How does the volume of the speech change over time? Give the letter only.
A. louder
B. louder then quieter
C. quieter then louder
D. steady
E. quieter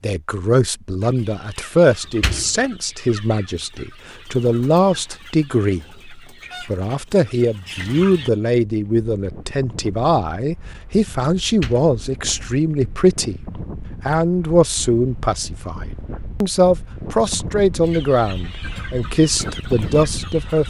D.